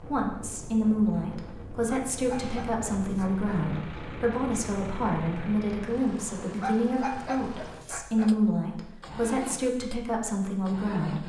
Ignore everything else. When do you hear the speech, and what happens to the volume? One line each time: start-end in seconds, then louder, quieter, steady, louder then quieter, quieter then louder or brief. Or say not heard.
0.1-11.2 steady.